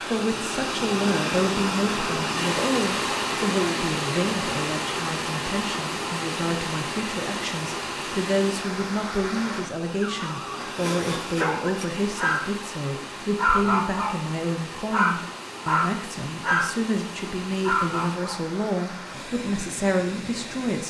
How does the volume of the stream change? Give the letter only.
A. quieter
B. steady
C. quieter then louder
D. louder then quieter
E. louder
A.